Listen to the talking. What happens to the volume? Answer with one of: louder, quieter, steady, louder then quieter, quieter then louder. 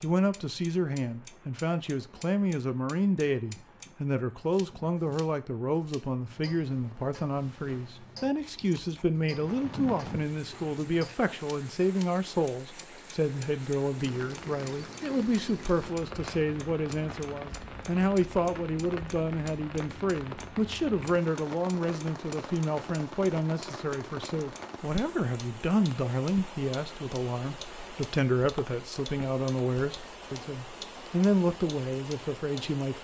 steady.